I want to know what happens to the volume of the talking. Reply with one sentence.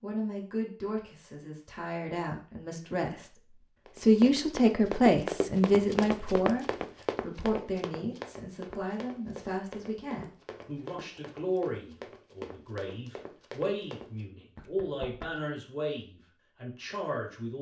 The volume of the talking goes up, then down.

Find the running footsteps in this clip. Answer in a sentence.
You can hear the running footsteps from 3.9 to 15.4 s.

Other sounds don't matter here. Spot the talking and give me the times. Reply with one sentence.
The talking can be heard from 0.0 to 17.5 s.